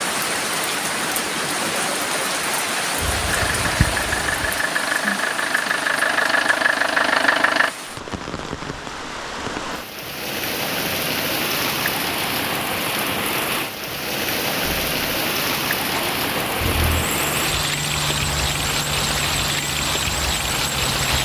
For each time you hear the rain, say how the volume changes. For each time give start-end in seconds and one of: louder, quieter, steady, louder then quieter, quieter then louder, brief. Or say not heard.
0.0-21.1 quieter then louder.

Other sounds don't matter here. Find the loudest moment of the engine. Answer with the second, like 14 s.
7 s.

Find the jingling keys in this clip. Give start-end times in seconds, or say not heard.
3.0-4.6.